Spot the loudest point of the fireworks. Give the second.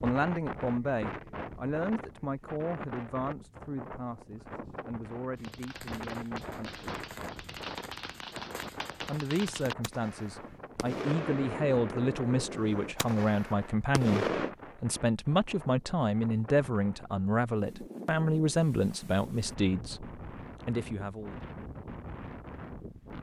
14 s.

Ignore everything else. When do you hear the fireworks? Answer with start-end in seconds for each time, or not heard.
5.3-14.6.